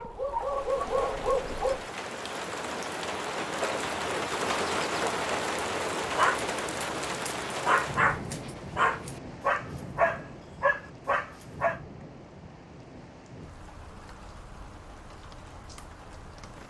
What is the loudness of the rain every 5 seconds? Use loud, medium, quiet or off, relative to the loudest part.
loud, loud, quiet, quiet.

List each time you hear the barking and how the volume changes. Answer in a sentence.
The barking can be heard briefly from 0.0 to 1.9 s; and from 6.0 to 11.8 s, getting louder.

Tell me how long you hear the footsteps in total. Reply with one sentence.
You can't hear the footsteps here.